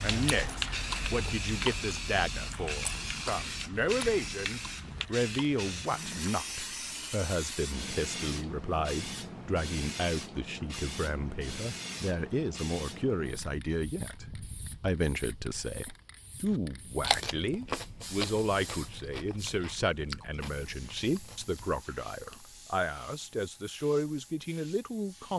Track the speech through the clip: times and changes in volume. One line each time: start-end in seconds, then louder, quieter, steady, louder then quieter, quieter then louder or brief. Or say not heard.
0.0-25.3 steady.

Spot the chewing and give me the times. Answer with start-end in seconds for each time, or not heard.
0.1-6.5, 16.5-22.6.